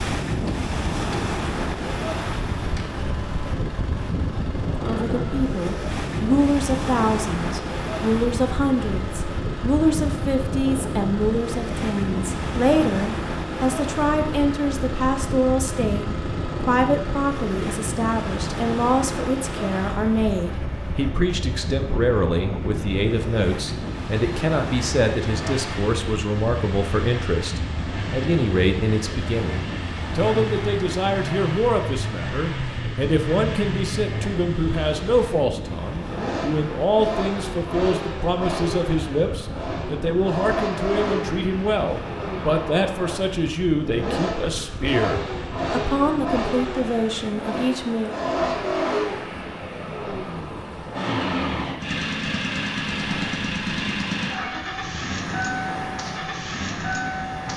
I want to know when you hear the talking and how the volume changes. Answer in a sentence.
The talking can be heard from 4.8 to 48.1 s, at a steady volume.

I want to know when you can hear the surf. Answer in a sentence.
The surf can be heard from 0.0 to 57.5 s.